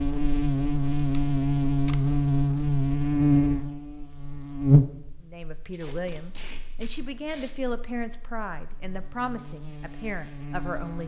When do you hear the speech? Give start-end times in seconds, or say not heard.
5.2-11.0.